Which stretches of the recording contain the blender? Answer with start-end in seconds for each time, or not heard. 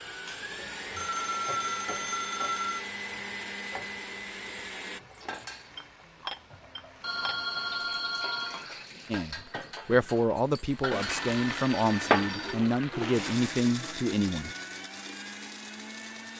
0.0-5.0, 10.9-16.3.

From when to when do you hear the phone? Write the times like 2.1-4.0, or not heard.
0.9-2.9, 7.0-8.7, 11.2-12.6.